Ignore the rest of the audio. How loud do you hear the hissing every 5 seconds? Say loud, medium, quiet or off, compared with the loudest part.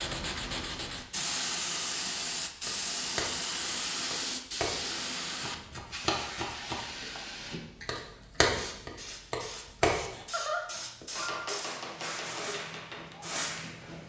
loud, medium, medium.